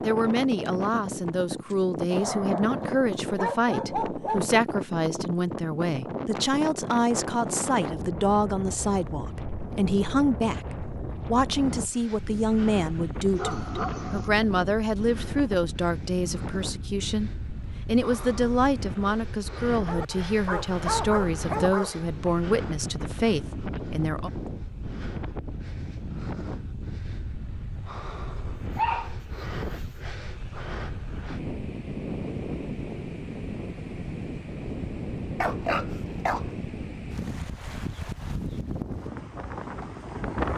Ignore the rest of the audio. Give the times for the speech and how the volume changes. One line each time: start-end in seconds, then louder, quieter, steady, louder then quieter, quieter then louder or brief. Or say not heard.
0.0-24.3 steady.